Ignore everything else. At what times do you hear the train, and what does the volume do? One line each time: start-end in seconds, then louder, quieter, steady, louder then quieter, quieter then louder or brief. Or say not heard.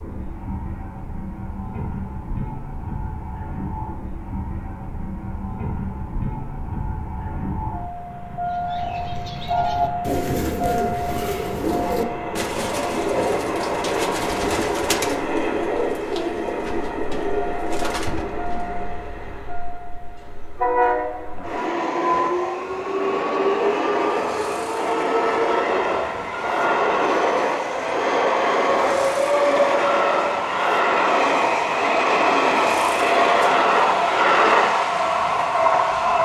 0.0-36.2 louder.